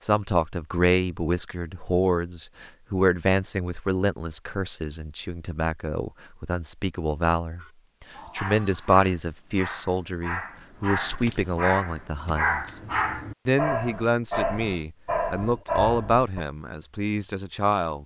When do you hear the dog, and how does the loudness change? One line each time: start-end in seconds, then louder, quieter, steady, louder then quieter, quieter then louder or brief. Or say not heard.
7.6-16.4 louder.